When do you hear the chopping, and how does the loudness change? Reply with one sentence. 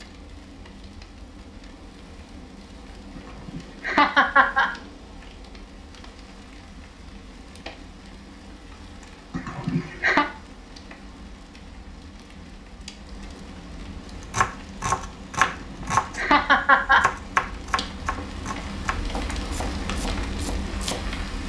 The chopping can be heard from 14.2 to 21.1 s, getting quieter.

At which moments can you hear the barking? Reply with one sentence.
You can't hear the barking here.